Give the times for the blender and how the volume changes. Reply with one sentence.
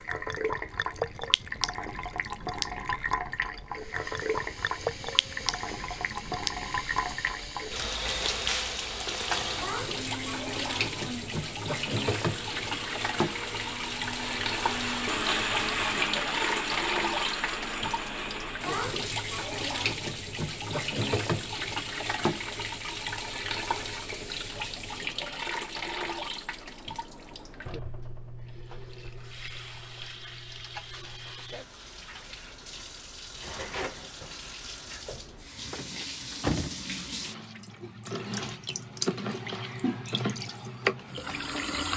You can hear the blender from 3.7 to 18.8 s, getting louder.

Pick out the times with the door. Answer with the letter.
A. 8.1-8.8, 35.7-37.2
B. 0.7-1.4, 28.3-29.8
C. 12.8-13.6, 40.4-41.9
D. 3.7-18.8
A.